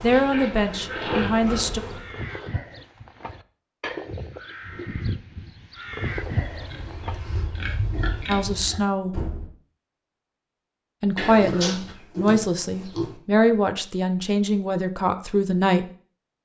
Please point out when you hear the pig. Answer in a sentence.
The pig can be heard from 0.1 to 1.6 s, from 6.0 to 8.8 s and from 11.2 to 13.2 s.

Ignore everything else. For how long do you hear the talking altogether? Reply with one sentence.
The talking can be heard for 8 seconds in total.